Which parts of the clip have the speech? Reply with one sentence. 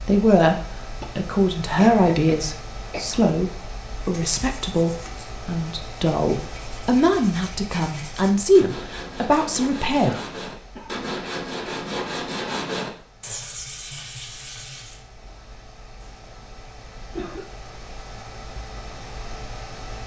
The speech can be heard from 0.0 to 0.6 s and from 1.1 to 10.2 s.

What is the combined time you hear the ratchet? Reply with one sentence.
The ratchet can't be heard in this clip.